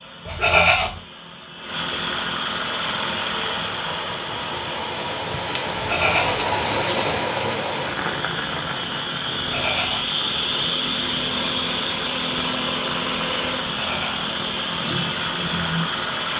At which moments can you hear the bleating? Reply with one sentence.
You can hear the bleating from 0.2 to 0.9 s, from 5.7 to 6.5 s, from 9.3 to 10.1 s and from 13.7 to 14.3 s.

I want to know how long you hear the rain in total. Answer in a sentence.
The rain can be heard for 14 seconds in total.